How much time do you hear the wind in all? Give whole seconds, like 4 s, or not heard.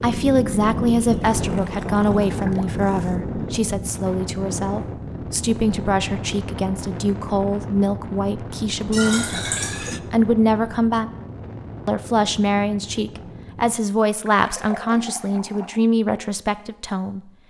14 s.